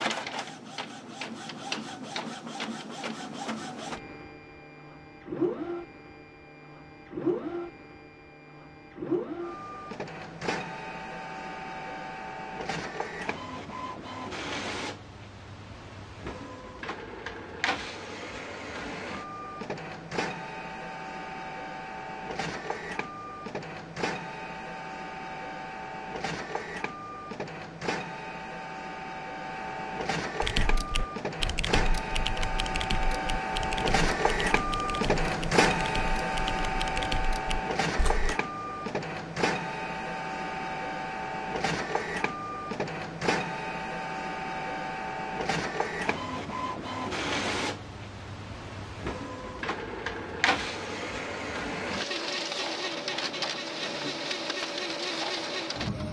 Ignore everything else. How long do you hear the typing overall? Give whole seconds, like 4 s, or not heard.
8 s.